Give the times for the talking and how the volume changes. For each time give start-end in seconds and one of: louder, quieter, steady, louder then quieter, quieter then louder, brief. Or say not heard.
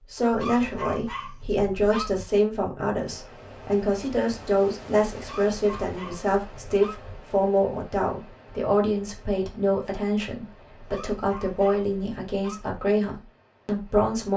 0.1-14.3 steady.